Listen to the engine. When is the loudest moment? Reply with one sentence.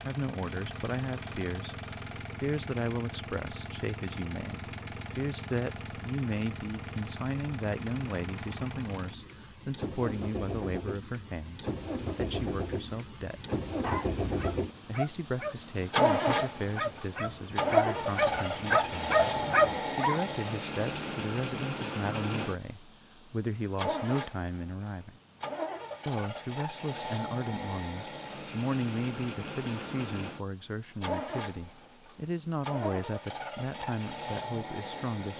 The volume of the engine peaks at 16 seconds.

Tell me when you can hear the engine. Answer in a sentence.
The engine can be heard from 0.0 to 35.3 s.